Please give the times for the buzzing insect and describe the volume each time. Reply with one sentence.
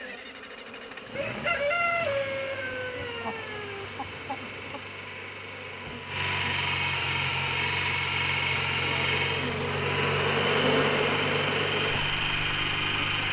You can hear the buzzing insect from 0.0 to 13.2 s, getting louder.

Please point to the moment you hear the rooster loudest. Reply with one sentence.
The volume of the rooster peaks at 2 seconds.